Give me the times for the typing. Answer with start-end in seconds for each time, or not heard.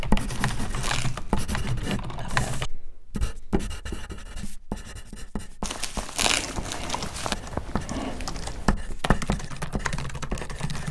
0.0-2.7, 6.2-10.8.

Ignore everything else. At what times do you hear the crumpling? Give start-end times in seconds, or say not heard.
0.2-1.4, 5.6-7.3.